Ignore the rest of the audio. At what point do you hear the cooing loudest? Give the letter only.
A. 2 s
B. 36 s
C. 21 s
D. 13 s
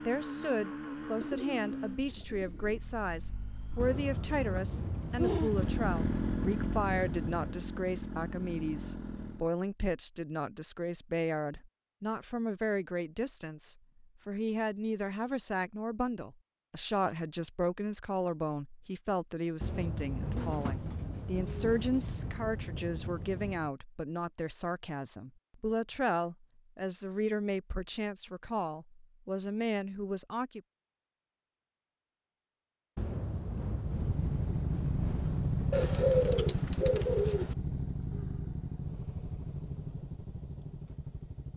B.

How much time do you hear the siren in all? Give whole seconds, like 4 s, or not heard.
not heard.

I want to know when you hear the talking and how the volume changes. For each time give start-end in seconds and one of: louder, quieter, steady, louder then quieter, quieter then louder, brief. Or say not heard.
0.1-30.6 steady.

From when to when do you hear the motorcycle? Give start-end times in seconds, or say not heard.
0.0-9.5, 33.8-41.5.